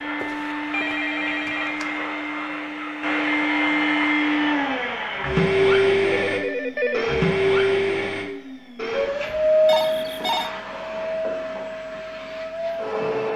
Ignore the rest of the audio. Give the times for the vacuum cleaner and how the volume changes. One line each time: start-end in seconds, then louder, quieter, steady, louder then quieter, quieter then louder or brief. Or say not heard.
0.0-13.3 louder then quieter.